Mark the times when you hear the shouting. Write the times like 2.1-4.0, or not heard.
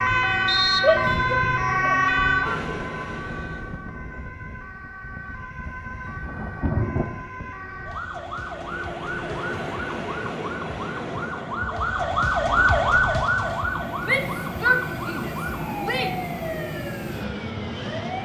0.8-2.6, 14.0-16.1.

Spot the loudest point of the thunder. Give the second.
7 s.